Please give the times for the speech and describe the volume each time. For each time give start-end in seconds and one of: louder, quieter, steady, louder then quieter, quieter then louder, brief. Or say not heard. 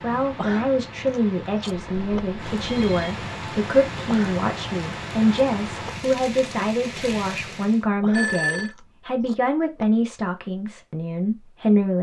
0.0-11.9 steady.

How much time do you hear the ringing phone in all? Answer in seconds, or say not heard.
2 s.